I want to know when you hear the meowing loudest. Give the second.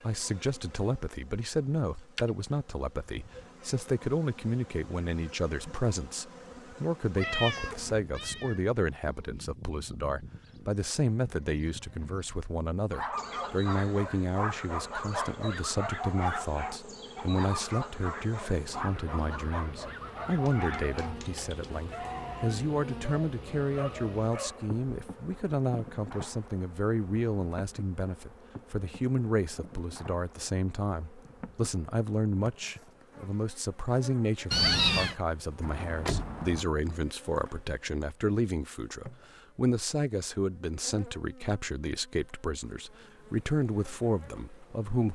35 s.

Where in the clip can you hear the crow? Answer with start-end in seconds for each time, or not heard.
not heard.